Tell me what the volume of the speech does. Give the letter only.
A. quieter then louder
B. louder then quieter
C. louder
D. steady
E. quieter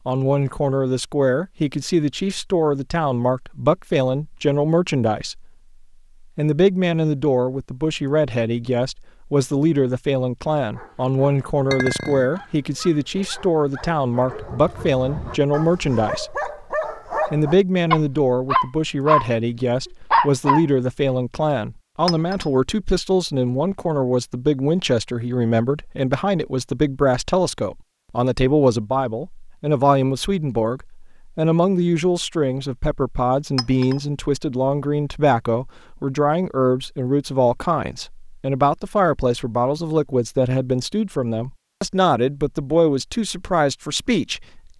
D.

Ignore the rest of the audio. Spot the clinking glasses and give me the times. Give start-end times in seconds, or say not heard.
11.7-12.3, 22.1-22.5, 33.5-34.0.